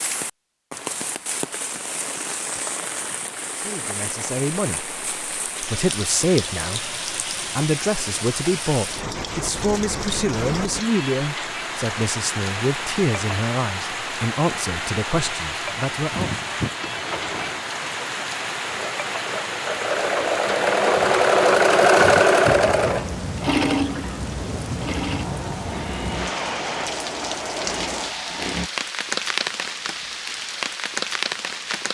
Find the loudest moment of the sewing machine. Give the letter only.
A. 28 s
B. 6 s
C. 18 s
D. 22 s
D.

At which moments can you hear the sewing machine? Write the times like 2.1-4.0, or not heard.
16.6-28.7.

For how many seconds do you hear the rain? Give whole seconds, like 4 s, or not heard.
32 s.